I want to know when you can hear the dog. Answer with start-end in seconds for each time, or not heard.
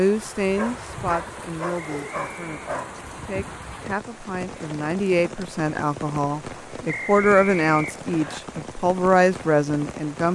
0.6-3.0.